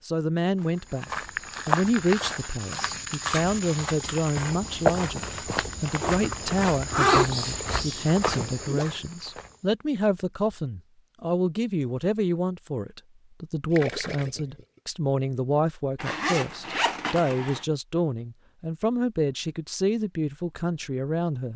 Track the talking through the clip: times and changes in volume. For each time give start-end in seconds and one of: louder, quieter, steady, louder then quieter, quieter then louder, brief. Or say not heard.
0.1-21.5 steady.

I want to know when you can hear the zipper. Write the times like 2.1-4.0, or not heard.
6.0-7.5, 16.0-17.6.